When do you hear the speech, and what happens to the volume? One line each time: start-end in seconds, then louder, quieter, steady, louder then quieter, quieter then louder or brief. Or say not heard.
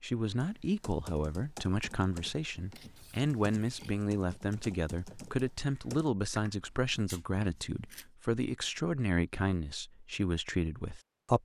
0.0-11.4 steady.